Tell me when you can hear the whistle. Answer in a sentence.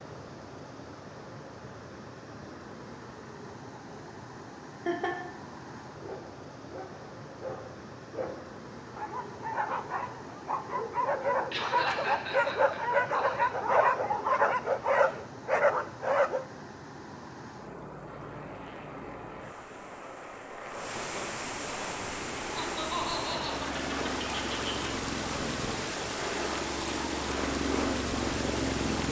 The whistle can't be heard in this clip.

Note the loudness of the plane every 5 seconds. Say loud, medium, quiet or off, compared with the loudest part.
off, off, off, quiet, medium, loud.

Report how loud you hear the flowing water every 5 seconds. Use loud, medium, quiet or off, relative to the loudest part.
medium, medium, medium, medium, loud, loud.